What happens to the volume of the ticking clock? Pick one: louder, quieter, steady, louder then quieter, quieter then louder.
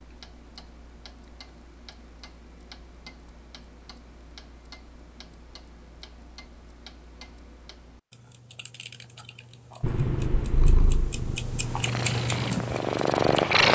louder.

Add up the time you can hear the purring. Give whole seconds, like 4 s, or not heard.
4 s.